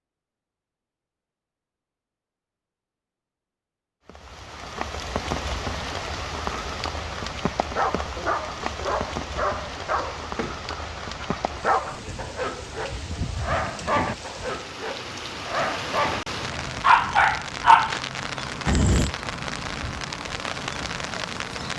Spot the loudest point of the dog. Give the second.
18 s.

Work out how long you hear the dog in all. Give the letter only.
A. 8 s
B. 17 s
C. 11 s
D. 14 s
C.